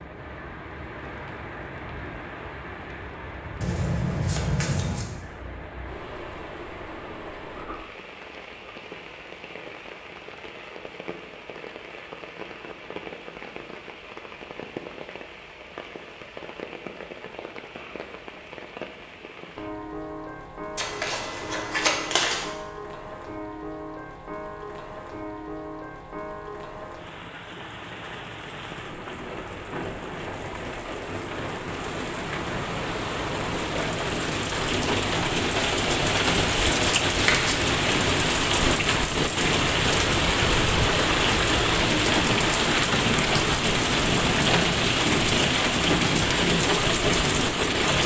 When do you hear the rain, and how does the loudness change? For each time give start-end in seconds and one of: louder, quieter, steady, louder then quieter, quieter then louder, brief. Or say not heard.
0.0-48.0 louder.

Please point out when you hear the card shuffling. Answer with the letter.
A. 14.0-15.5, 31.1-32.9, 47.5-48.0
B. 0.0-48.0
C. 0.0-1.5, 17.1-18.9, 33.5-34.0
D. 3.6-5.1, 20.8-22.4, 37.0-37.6
D.